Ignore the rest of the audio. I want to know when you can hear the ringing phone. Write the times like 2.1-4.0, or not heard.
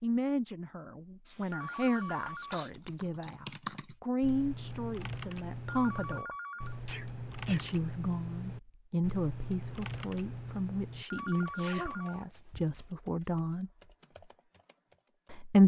1.5-3.0, 5.7-6.8, 11.1-12.9.